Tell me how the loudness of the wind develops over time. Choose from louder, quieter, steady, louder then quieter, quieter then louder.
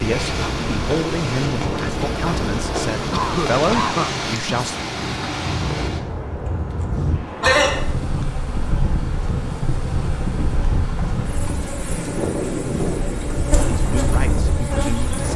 steady.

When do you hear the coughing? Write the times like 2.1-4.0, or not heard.
3.1-4.2.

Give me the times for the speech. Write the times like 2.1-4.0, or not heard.
0.0-4.8, 13.6-15.3.